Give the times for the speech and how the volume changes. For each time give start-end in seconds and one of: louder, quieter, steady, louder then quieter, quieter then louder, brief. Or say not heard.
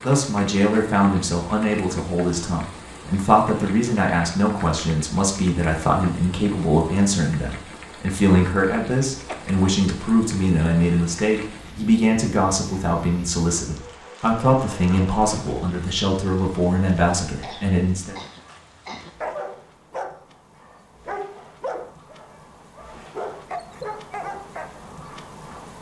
0.0-18.1 steady.